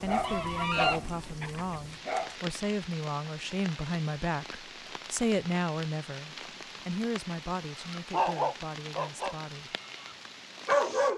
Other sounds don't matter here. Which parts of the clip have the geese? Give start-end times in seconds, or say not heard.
0.2-1.6.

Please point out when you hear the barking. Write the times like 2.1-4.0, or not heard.
0.0-2.4, 8.0-11.1.